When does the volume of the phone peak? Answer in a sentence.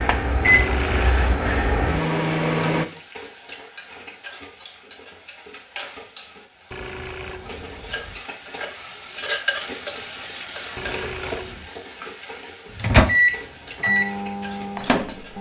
The volume of the phone peaks at 1 second.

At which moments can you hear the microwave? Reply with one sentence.
You can hear the microwave from 0.0 to 2.9 s and from 12.8 to 15.3 s.